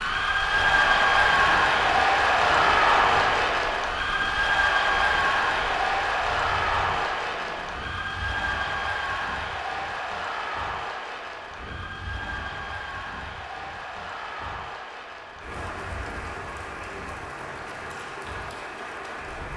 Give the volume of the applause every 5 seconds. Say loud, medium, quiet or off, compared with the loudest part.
loud, medium, quiet, quiet.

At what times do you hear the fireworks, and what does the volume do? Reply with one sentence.
The fireworks can't be heard in this clip.